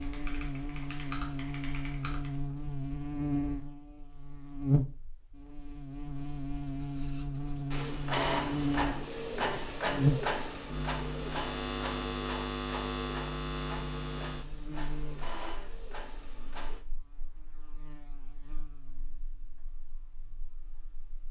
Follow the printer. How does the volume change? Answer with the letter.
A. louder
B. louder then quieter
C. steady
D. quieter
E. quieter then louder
D.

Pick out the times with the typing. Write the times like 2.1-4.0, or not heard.
0.0-2.4.